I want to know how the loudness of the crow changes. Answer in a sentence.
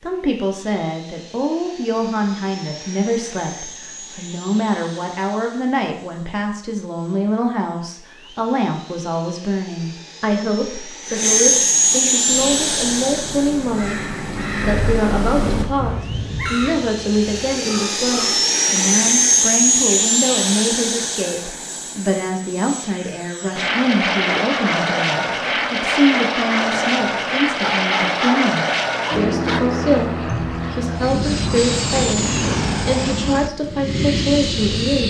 The loudness of the crow goes up, then down.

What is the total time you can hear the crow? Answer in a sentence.
You can hear the crow for 6 seconds altogether.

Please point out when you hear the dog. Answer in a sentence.
The dog can be heard from 27.6 to 29.6 s.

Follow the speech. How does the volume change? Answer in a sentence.
The loudness of the speech stays about the same.